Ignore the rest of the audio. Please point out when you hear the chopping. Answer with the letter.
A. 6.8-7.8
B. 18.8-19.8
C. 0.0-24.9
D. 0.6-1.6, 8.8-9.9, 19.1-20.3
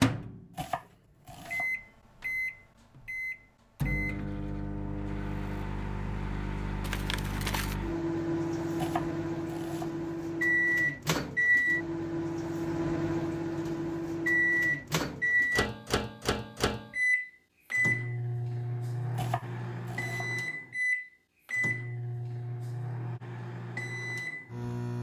D.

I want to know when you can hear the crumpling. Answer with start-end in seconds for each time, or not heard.
6.8-7.8.